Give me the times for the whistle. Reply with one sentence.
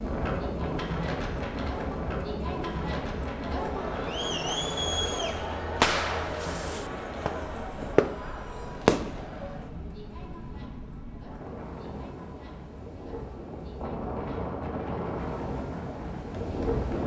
The whistle can't be heard in this clip.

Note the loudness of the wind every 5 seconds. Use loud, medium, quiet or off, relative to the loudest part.
loud, medium, medium, loud.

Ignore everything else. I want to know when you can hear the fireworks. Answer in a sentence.
You can hear the fireworks from 5.8 to 8.2 s and from 8.8 to 9.2 s.